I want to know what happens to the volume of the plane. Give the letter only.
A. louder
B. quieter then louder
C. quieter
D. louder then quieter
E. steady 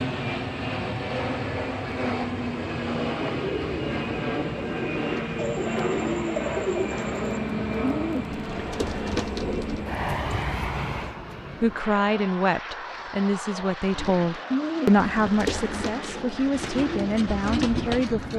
C.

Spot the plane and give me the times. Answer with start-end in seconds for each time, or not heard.
0.0-18.3.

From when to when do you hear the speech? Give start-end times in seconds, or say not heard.
11.6-18.3.